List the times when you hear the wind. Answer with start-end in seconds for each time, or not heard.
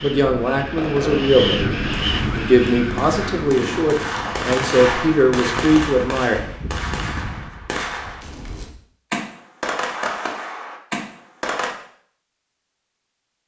0.0-8.2.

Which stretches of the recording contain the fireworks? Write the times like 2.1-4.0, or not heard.
0.6-11.7.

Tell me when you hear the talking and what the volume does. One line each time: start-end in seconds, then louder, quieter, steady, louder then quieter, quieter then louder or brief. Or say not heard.
0.0-6.4 steady.